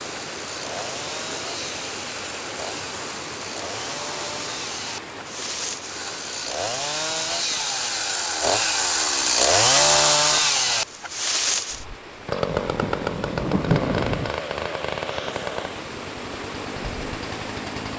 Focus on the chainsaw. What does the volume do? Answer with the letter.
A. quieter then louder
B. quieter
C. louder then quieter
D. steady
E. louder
C.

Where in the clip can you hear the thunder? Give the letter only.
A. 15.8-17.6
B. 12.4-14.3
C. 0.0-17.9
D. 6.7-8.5
B.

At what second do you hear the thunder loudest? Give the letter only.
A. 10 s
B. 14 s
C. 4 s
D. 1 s
B.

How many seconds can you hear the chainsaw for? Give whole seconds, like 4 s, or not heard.
18 s.